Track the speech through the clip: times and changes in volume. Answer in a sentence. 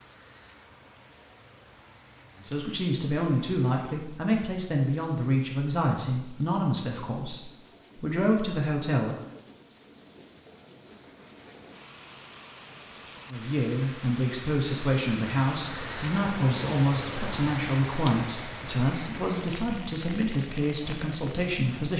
The speech can be heard from 2.4 to 9.2 s, at a steady volume; and from 13.3 to 21.9 s, at a steady volume.